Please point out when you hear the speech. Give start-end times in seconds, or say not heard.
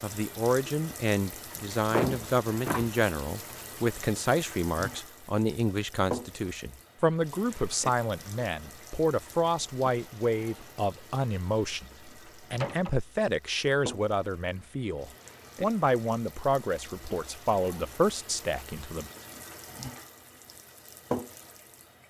0.0-19.1.